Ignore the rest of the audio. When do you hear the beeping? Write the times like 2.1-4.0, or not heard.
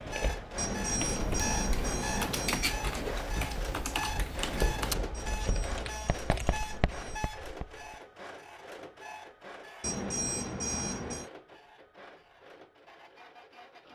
0.6-2.7, 5.2-7.2, 9.8-11.3.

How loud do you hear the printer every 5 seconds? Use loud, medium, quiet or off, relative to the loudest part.
loud, loud, quiet.